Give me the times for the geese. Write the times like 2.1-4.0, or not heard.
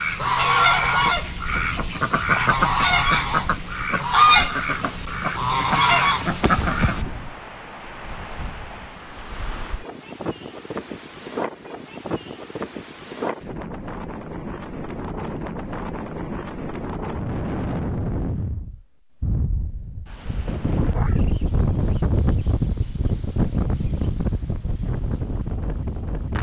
0.0-7.0.